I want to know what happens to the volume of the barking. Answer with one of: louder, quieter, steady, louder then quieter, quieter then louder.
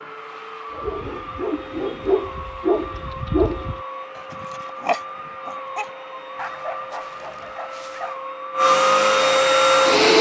quieter.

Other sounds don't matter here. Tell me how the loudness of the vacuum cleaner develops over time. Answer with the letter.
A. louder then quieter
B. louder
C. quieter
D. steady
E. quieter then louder
B.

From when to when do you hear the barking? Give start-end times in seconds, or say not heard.
0.7-8.2.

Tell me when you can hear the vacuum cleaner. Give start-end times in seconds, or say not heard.
0.0-10.1.